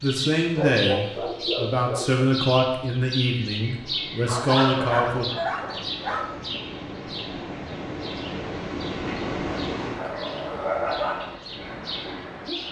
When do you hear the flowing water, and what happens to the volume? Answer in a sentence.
The flowing water can be heard from 3.6 to 12.6 s, getting louder then quieter.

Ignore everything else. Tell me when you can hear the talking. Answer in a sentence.
The talking can be heard from 0.0 to 5.2 s.